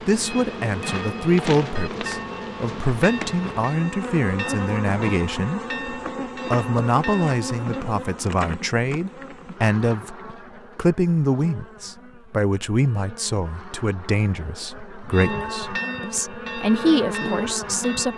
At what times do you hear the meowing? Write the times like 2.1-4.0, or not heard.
not heard.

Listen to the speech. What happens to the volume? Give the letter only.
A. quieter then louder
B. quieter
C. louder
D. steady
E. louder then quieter
D.